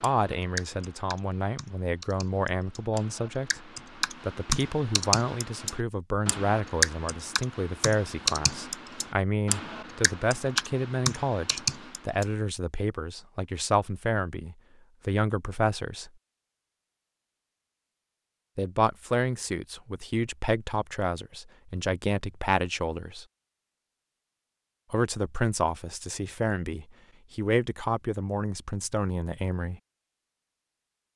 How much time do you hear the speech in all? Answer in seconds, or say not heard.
26 s.